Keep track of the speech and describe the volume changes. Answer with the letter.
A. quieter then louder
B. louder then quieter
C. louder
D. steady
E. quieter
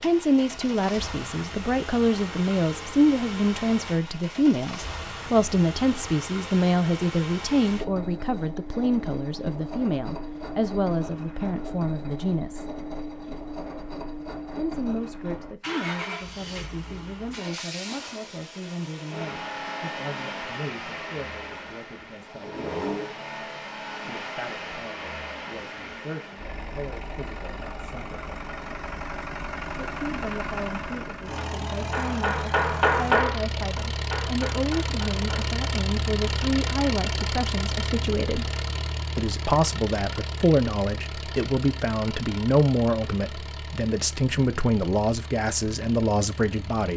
A.